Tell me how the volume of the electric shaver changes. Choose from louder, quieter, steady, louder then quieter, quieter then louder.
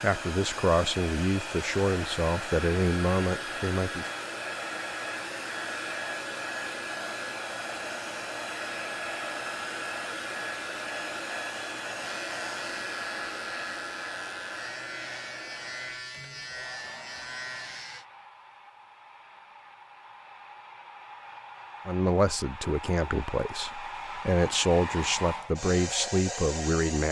steady.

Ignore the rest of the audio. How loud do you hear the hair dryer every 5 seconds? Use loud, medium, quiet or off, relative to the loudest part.
loud, loud, loud, quiet, medium, loud.